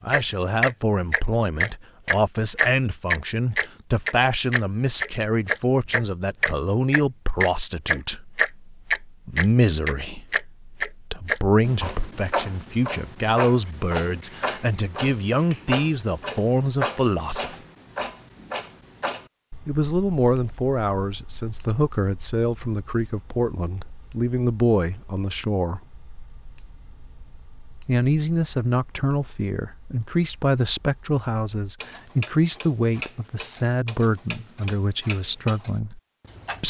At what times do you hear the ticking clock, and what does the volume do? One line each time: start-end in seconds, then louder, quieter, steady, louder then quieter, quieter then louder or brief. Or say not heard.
0.0-36.6 quieter then louder.